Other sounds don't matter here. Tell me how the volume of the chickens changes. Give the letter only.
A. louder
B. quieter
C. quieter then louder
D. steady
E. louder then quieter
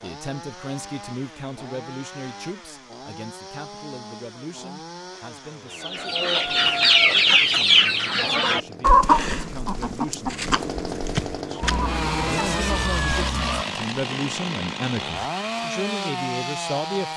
B.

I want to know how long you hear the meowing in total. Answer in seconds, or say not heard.
2 s.